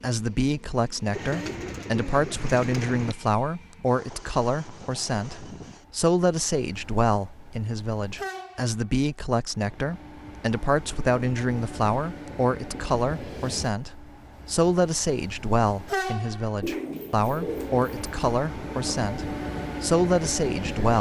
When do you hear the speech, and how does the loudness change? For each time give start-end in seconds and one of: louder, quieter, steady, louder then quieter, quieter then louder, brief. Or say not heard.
0.0-20.9 steady.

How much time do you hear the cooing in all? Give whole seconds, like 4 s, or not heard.
4 s.